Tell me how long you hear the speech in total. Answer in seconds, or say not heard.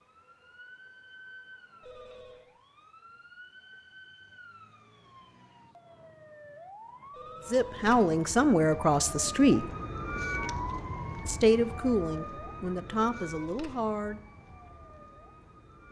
5 s.